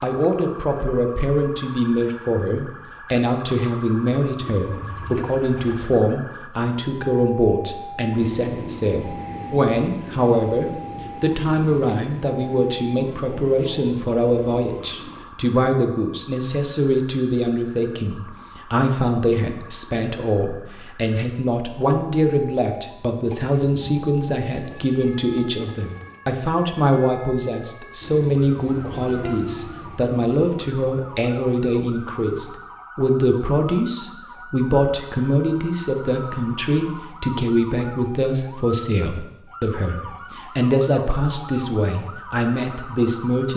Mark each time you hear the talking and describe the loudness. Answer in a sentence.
You can hear the talking from 0.0 to 43.5 s, at a steady volume.